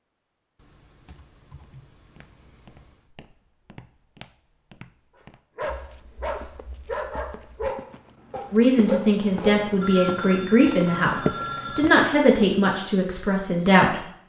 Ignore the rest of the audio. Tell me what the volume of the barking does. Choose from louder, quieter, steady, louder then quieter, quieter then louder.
quieter then louder.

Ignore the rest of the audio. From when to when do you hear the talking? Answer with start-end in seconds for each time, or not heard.
8.5-14.1.